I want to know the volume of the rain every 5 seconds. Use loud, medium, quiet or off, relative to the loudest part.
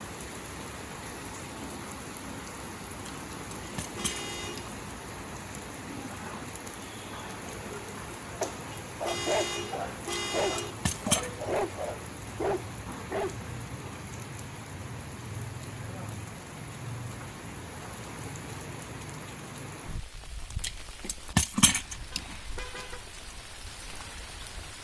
loud, loud, loud, loud, medium.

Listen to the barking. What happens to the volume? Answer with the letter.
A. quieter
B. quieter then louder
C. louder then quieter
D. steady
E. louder
D.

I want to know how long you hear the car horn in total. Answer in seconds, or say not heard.
4 s.